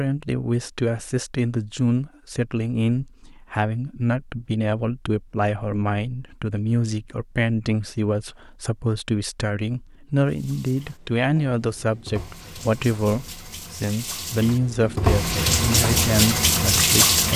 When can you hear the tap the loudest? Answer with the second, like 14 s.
17 s.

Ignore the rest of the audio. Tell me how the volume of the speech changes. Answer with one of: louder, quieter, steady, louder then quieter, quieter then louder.
steady.